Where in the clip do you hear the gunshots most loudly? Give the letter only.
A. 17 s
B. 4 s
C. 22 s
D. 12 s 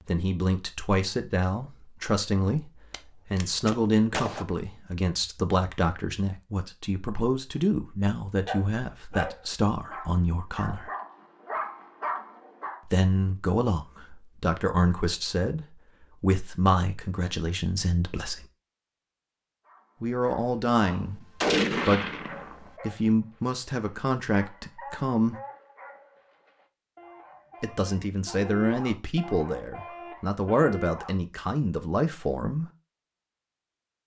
C.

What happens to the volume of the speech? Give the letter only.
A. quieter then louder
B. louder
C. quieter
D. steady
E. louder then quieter
D.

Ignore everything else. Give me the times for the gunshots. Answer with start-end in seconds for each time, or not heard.
2.9-4.5, 20.9-22.7.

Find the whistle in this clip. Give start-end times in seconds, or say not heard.
not heard.